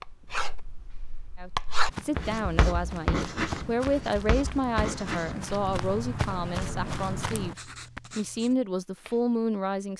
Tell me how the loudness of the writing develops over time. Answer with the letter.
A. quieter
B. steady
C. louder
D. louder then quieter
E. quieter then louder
A.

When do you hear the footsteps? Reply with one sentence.
The footsteps can be heard from 1.9 to 8.0 s.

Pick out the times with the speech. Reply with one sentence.
The speech can be heard from 1.4 to 9.9 s.